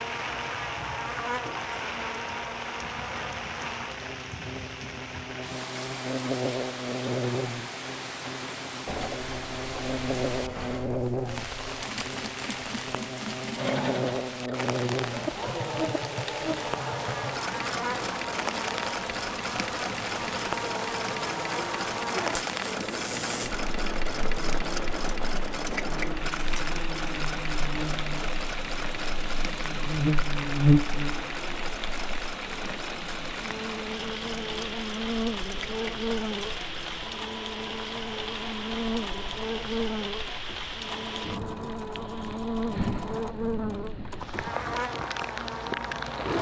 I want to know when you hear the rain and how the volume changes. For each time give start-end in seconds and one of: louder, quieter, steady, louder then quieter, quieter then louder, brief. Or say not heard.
0.0-46.3 steady.